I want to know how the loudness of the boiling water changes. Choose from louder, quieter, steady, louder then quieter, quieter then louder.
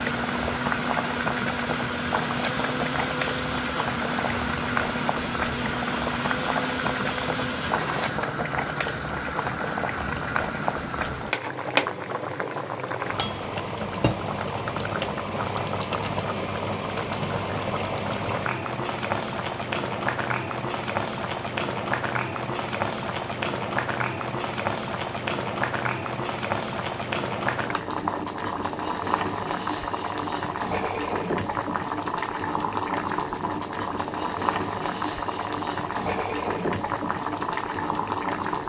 steady.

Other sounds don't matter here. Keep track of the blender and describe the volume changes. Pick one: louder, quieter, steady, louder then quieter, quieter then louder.
steady.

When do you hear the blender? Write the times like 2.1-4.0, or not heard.
0.0-8.2.